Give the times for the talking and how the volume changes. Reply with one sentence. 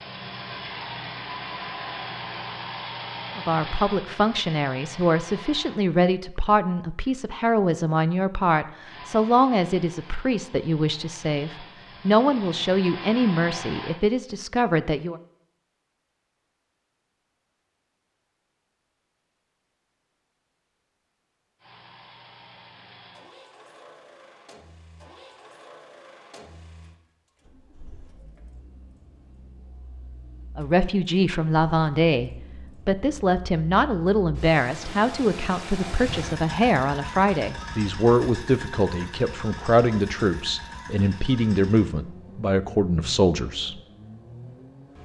You can hear the talking from 3.4 to 15.2 s, at a steady volume; and from 30.6 to 43.8 s, at a steady volume.